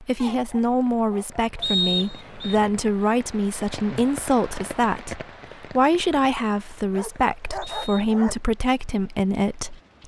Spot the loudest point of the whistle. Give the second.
2 s.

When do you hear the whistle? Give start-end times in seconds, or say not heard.
1.6-2.5, 7.6-8.1.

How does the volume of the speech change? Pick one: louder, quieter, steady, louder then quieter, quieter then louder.
steady.